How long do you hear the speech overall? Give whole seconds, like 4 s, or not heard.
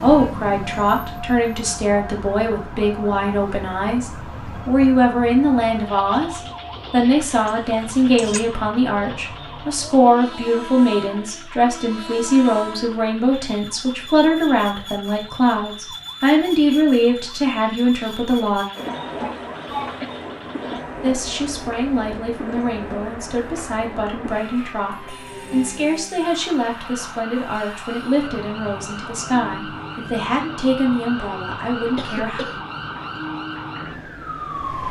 30 s.